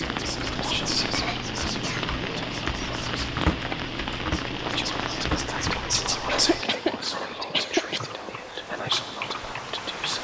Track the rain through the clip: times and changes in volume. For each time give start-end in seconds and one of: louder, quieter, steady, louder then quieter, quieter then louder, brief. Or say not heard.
0.0-10.1 quieter.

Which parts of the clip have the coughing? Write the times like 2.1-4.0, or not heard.
1.0-2.1, 6.2-8.0.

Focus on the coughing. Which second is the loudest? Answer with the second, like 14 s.
8 s.